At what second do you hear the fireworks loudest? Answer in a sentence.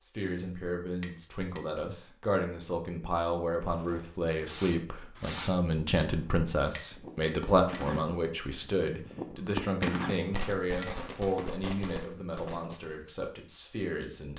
The loudest moment of the fireworks is at 10 seconds.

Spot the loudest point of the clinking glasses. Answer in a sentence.
The volume of the clinking glasses peaks at 10 seconds.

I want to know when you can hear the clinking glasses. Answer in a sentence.
The clinking glasses can be heard from 1.0 to 1.6 s, from 6.8 to 7.8 s and from 9.8 to 10.8 s.